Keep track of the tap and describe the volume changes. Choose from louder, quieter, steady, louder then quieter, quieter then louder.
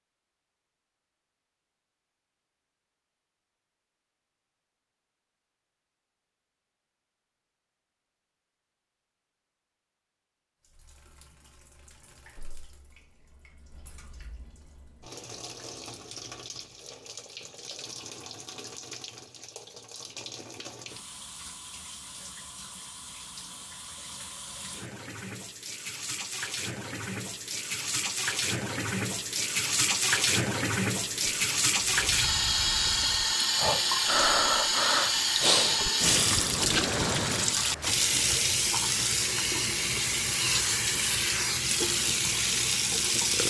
louder.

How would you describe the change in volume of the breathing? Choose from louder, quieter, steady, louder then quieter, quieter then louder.
louder then quieter.